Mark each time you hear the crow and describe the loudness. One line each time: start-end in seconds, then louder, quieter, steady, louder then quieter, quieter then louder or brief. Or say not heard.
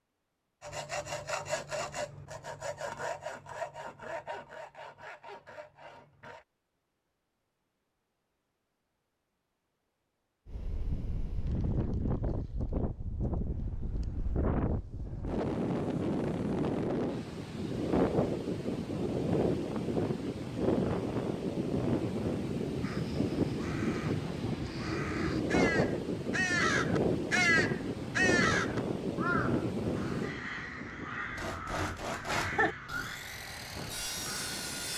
22.8-34.6 louder then quieter.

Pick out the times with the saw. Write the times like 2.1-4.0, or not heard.
0.6-6.5, 31.3-34.9.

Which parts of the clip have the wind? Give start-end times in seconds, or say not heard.
10.4-34.9.